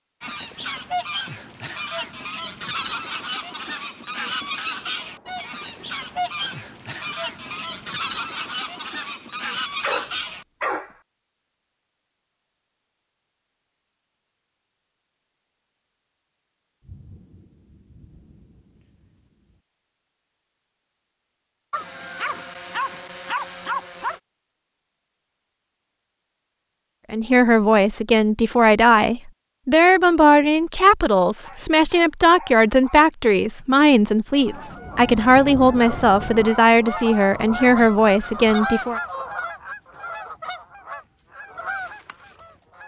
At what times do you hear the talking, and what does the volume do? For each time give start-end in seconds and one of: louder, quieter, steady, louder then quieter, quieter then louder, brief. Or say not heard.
27.1-39.0 steady.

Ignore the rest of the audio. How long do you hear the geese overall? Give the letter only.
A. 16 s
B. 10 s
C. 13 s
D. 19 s
D.